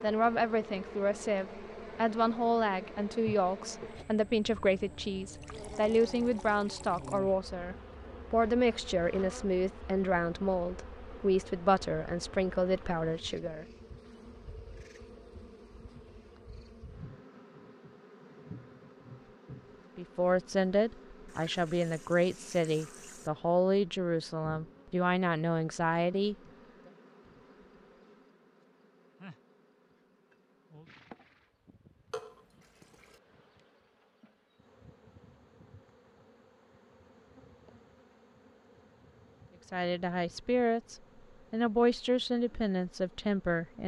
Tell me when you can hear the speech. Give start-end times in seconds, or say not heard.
0.0-13.7, 19.9-26.4, 39.7-43.8.